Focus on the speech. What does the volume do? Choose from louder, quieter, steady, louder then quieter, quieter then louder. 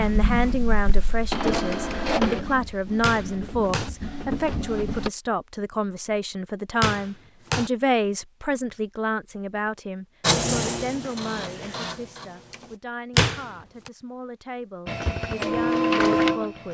quieter.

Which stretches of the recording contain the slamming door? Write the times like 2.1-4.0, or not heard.
3.0-3.9, 6.8-7.7, 13.2-13.9.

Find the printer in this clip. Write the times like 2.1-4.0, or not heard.
0.0-5.1, 10.2-12.8, 14.8-16.6.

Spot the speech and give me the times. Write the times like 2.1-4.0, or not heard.
0.0-16.6.